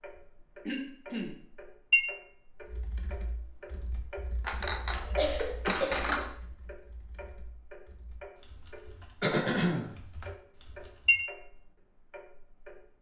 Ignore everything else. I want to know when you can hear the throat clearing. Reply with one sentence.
The throat clearing can be heard from 0.7 to 1.4 s, from 4.9 to 6.0 s and from 9.2 to 9.9 s.